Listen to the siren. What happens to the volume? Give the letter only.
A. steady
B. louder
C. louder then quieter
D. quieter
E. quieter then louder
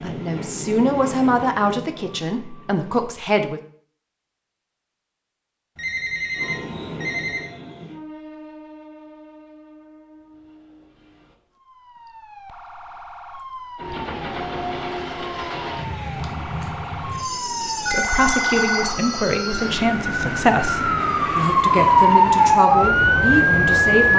B.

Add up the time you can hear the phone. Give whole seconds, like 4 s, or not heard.
3 s.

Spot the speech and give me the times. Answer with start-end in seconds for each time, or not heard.
0.0-3.6, 17.9-24.1.